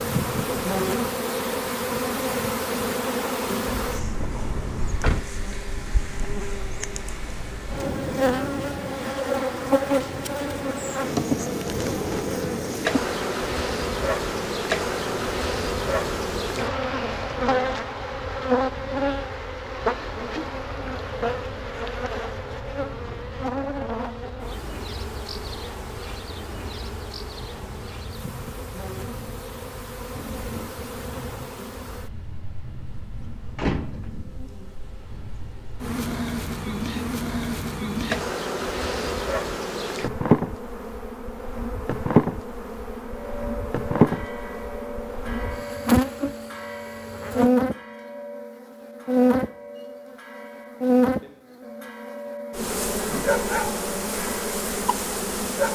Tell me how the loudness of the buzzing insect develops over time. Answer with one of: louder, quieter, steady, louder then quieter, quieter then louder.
quieter then louder.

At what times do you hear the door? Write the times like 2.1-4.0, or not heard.
3.6-5.3, 33.5-34.3.